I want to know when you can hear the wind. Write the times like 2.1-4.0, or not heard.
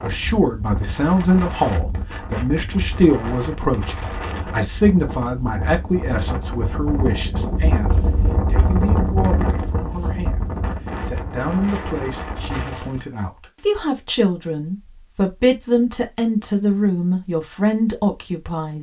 0.0-13.1.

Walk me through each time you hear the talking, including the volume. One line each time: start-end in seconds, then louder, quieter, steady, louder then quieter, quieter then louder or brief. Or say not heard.
0.0-18.7 quieter then louder.